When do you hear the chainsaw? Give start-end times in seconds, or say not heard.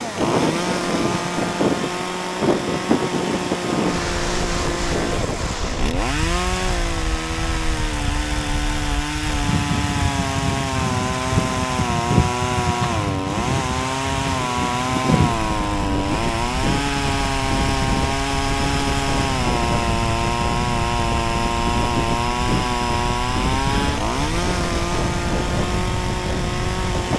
0.0-27.1.